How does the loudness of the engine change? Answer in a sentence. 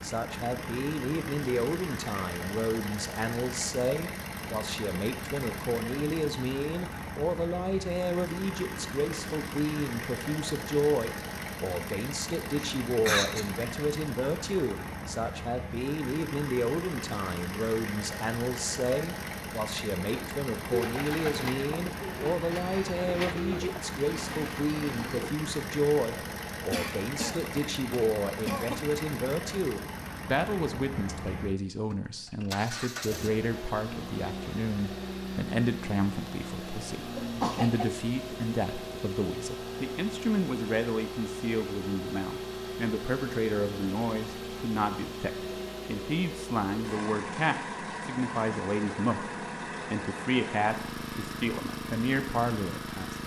The volume of the engine stays about the same.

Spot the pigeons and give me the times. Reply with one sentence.
You can hear the pigeons from 20.1 to 25.3 s.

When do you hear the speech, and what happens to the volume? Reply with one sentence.
The speech can be heard from 0.0 to 53.2 s, at a steady volume.